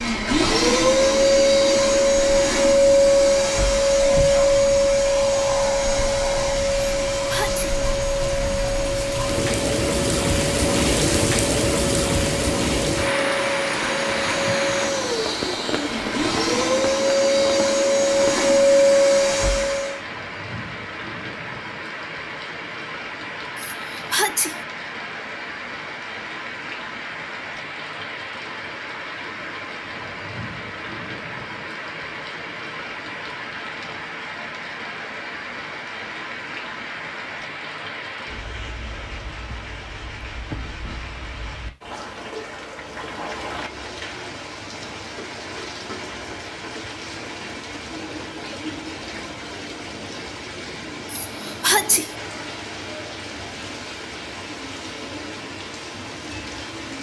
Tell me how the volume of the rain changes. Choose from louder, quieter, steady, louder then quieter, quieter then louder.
quieter.